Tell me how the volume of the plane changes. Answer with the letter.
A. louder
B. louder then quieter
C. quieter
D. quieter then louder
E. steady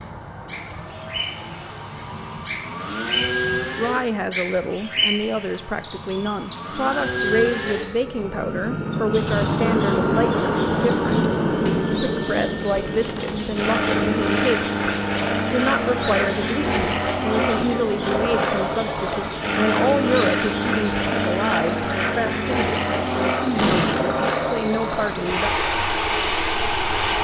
A.